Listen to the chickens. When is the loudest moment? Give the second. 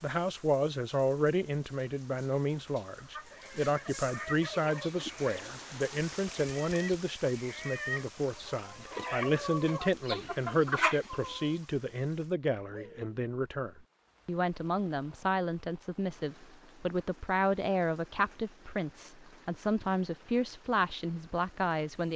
11 s.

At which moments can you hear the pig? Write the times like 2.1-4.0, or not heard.
not heard.